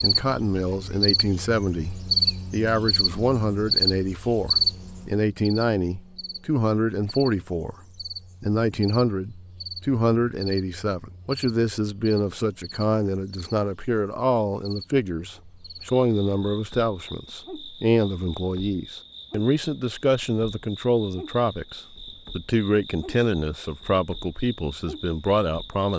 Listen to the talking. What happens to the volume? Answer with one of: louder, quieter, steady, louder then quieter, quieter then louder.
steady.